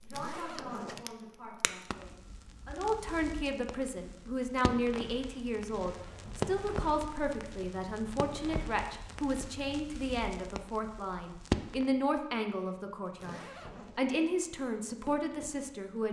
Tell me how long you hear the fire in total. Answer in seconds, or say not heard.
16 s.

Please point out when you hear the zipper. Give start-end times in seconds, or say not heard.
0.1-1.1, 5.9-6.6, 13.2-14.0.